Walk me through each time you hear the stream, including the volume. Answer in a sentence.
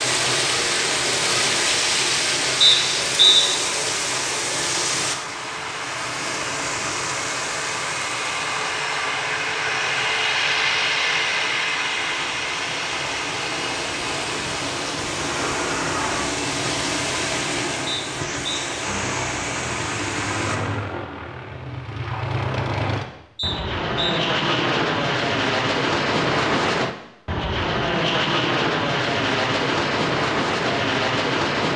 You can hear the stream from 0.0 to 20.6 s, getting quieter then louder.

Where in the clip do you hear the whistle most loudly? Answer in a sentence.
The loudest moment of the whistle is at 3 seconds.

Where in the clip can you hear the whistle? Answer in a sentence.
The whistle can be heard from 2.6 to 3.5 s, from 17.9 to 18.7 s and from 23.4 to 24.2 s.